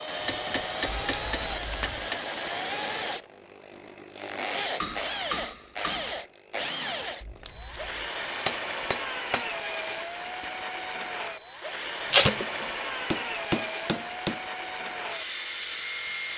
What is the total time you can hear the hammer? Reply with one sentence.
The hammer can be heard for 7 seconds in total.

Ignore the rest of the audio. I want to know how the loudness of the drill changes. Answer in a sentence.
The loudness of the drill stays about the same.